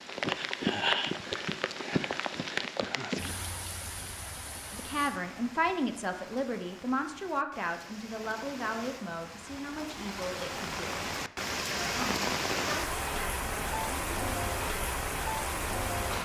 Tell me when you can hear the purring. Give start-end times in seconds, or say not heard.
not heard.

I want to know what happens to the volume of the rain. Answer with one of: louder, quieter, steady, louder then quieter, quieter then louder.
quieter then louder.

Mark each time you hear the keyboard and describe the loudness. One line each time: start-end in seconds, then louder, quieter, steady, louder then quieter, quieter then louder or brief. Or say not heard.
not heard.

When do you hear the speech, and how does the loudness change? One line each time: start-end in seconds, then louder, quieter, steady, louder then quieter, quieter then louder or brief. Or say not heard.
4.8-11.1 quieter
11.8-14.2 brief.